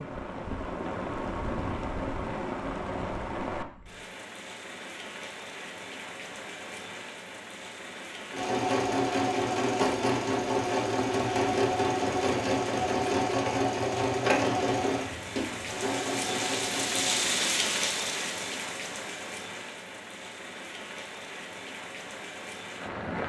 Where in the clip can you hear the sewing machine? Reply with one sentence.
The sewing machine can be heard from 8.3 to 17.3 s.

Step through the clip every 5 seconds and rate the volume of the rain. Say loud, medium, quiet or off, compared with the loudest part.
loud, medium, medium, loud, medium.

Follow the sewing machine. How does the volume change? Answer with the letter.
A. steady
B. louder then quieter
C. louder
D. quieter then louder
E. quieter
E.